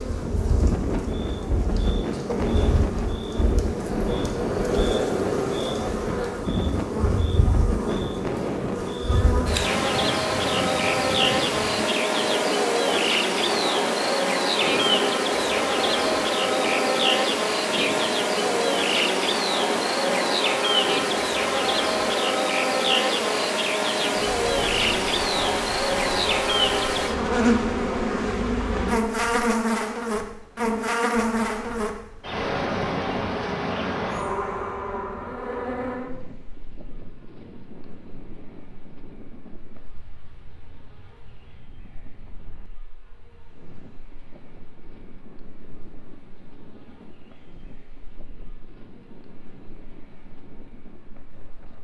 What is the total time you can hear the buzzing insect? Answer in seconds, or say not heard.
52 s.